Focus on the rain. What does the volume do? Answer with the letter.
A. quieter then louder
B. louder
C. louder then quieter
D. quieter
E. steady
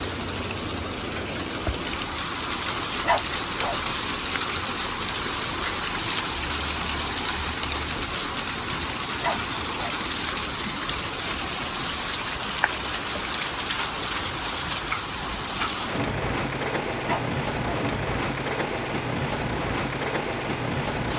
E.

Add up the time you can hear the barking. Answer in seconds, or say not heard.
2 s.